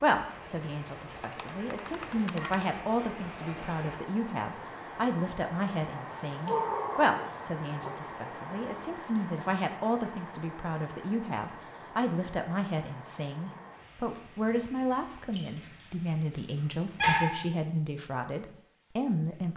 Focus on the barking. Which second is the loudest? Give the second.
17 s.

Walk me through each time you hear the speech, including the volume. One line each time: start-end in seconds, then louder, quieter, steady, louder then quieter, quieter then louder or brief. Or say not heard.
0.0-19.5 steady.